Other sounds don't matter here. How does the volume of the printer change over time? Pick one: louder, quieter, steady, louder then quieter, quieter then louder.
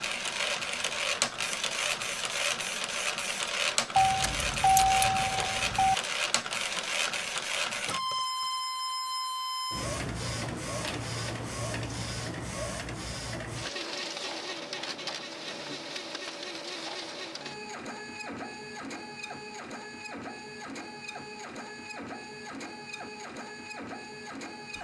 quieter.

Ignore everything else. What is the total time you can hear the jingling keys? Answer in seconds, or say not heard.
2 s.